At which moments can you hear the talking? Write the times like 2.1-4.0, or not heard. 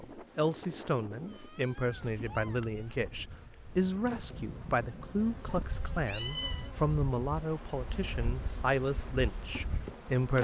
0.0-10.3.